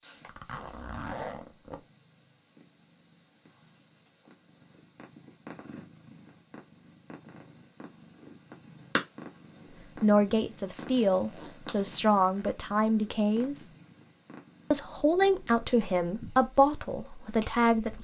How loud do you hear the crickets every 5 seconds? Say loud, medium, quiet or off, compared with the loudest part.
loud, loud, medium, off.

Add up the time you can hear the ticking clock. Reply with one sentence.
You can't hear the ticking clock here.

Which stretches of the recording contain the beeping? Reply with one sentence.
The beeping can't be heard in this clip.